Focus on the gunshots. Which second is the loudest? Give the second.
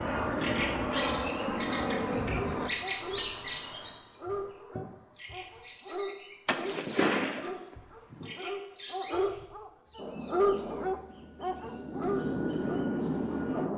7 s.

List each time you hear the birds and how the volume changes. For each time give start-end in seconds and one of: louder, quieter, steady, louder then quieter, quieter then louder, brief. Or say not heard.
0.0-13.5 quieter.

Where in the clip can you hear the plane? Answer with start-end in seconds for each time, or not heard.
0.0-2.7, 9.9-13.7.